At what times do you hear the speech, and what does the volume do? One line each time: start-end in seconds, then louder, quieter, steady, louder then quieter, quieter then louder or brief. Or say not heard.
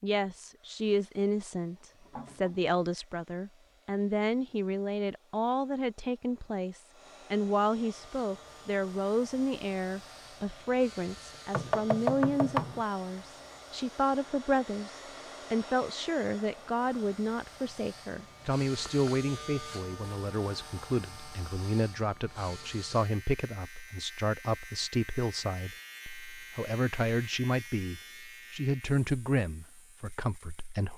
0.0-30.9 steady.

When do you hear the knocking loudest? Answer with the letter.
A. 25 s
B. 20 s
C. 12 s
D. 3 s
C.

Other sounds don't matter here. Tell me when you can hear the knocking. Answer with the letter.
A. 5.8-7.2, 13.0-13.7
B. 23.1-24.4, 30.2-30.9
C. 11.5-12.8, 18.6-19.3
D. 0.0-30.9
C.